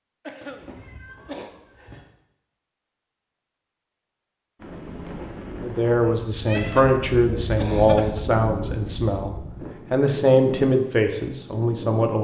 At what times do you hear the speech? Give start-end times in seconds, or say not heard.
5.6-12.2.